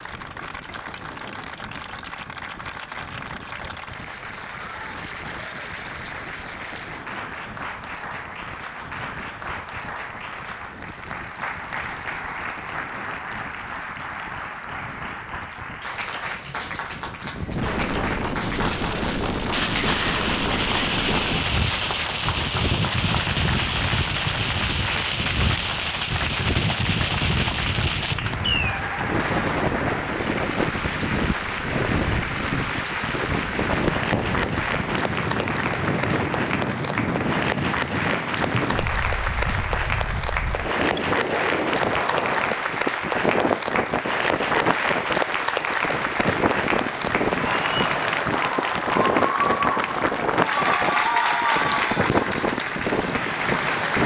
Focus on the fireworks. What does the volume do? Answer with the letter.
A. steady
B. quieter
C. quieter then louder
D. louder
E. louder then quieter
A.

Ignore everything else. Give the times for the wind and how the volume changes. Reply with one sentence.
The wind can be heard from 0.0 to 54.0 s, getting louder.